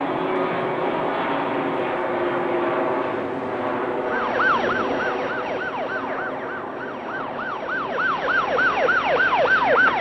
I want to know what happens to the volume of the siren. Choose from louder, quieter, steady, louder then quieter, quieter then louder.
quieter then louder.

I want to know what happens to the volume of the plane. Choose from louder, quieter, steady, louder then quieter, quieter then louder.
quieter.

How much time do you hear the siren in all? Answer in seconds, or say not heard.
6 s.